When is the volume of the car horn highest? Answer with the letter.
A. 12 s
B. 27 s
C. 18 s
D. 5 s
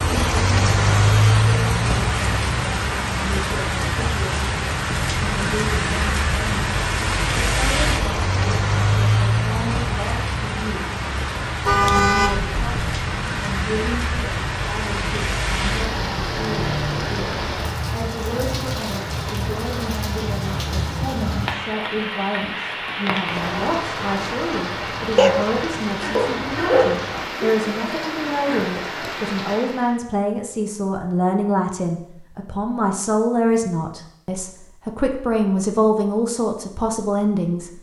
A.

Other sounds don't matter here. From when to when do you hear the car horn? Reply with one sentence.
You can hear the car horn from 11.7 to 12.8 s and from 26.0 to 27.1 s.